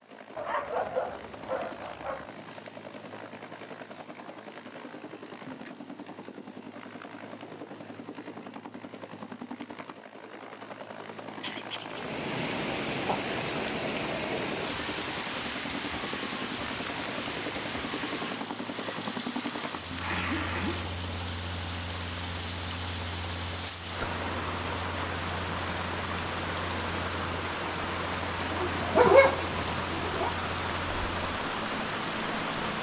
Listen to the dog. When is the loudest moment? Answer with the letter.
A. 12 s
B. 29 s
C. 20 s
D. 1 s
B.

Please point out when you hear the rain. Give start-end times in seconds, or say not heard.
11.8-32.7.